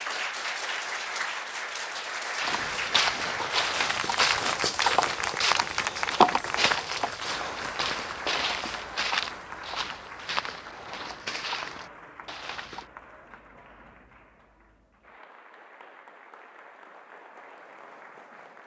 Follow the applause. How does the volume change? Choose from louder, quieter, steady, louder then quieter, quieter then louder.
quieter.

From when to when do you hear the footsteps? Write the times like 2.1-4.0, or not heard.
2.4-12.8.